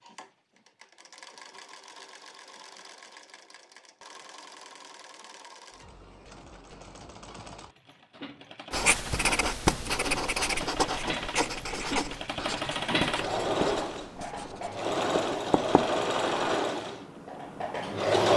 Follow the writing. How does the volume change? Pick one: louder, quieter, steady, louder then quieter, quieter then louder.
quieter.